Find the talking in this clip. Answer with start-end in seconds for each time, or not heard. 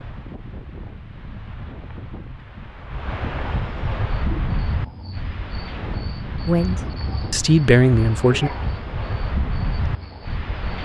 6.5-8.5.